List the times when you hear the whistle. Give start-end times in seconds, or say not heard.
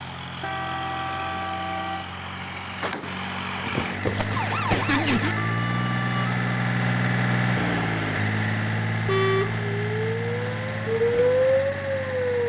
not heard.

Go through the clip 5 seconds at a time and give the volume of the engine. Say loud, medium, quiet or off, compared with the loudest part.
medium, loud, medium.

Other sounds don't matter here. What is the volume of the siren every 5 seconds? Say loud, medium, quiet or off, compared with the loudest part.
loud, medium, loud.